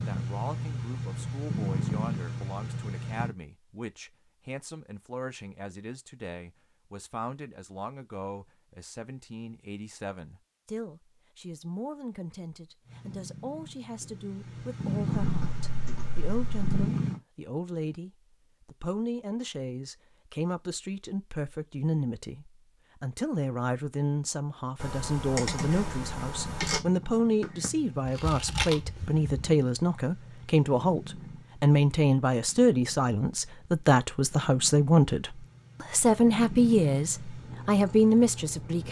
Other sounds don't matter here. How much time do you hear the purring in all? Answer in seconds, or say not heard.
20 s.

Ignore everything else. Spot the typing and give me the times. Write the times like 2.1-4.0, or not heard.
15.3-16.9, 24.8-26.8.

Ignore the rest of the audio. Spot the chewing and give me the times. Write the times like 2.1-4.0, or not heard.
28.1-29.4.